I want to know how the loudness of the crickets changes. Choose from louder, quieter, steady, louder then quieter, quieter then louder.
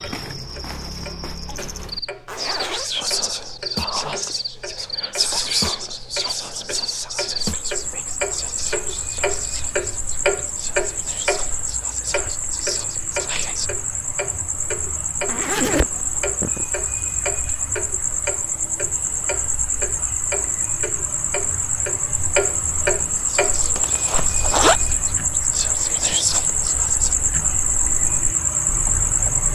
louder.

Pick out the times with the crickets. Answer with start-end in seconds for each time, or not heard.
0.0-29.5.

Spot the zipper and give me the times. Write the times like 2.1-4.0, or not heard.
2.2-2.9, 15.2-16.6, 23.8-24.8.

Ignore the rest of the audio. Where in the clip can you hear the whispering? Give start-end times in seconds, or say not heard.
2.4-13.7, 23.1-27.1.